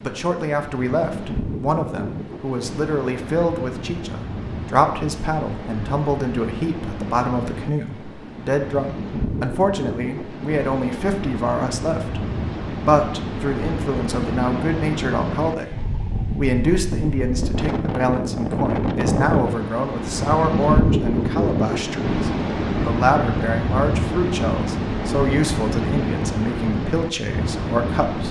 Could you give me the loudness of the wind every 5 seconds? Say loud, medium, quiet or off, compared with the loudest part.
medium, medium, medium, loud, loud, loud.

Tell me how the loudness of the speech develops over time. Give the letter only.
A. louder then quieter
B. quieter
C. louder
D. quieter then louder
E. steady
E.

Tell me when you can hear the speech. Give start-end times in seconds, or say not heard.
0.0-28.2.